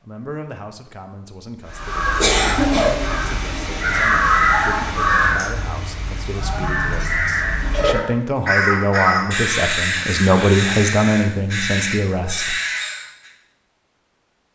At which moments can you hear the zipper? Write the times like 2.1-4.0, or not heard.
not heard.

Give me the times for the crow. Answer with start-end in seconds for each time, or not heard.
1.7-13.3.